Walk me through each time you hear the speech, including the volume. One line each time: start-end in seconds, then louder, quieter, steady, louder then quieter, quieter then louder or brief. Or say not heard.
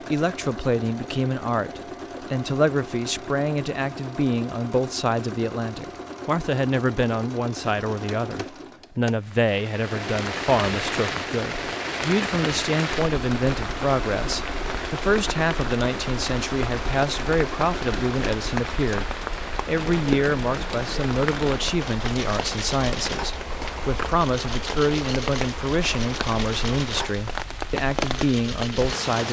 0.1-29.2 steady.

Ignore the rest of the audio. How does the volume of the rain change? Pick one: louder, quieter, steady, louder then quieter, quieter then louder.
steady.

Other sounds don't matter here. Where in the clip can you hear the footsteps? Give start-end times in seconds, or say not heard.
not heard.